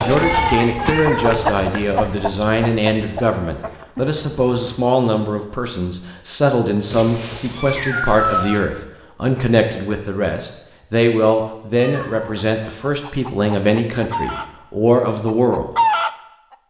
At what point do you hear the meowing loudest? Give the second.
8 s.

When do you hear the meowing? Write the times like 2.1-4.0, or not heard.
0.8-2.0, 6.9-8.7, 11.8-12.4.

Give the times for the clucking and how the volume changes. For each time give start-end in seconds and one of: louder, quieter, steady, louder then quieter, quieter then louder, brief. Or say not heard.
0.0-4.9 quieter
12.3-14.4 brief
15.1-16.1 brief.